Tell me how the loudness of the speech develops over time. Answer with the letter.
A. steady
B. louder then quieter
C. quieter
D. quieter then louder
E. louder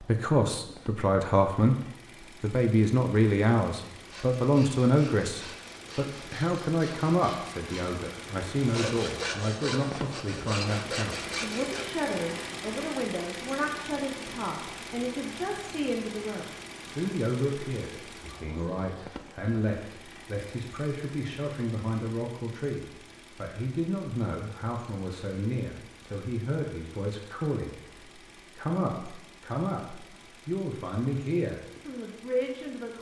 C.